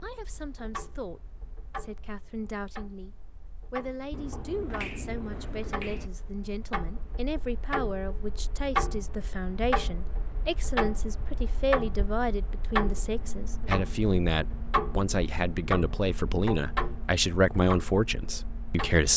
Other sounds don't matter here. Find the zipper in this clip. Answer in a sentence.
The zipper can't be heard in this clip.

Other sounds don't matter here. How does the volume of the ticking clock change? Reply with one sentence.
The volume of the ticking clock goes up.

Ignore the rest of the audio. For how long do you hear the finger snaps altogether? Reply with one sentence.
The finger snaps can be heard for 2 seconds in total.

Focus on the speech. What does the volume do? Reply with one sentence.
The loudness of the speech goes up.